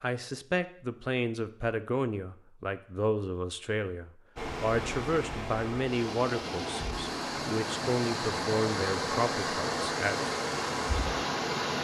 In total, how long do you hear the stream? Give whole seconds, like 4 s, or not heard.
7 s.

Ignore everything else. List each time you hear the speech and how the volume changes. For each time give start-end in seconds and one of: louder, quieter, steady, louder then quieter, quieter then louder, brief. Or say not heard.
0.0-10.3 steady.